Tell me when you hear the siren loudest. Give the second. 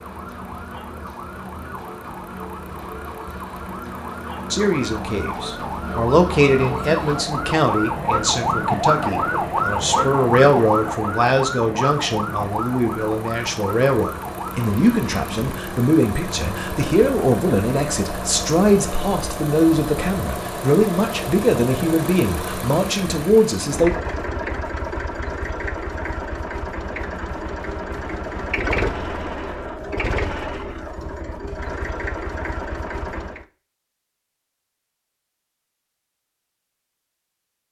9 s.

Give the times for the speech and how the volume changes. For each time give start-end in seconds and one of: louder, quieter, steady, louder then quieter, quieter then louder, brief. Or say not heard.
4.5-23.9 steady.